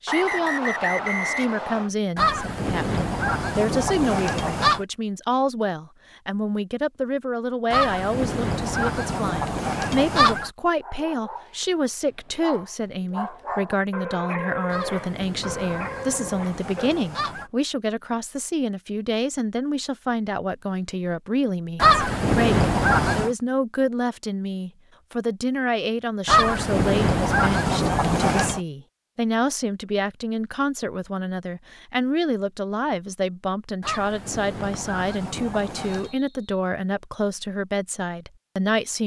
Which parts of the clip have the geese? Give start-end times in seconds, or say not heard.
2.1-4.8, 7.7-10.5, 14.7-17.5, 21.8-23.3, 26.2-28.6, 33.8-36.1.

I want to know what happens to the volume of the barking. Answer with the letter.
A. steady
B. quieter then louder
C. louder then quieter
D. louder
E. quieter
D.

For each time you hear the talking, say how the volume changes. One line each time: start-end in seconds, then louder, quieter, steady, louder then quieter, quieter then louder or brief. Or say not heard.
0.0-39.0 steady.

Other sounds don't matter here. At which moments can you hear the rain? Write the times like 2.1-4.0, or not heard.
not heard.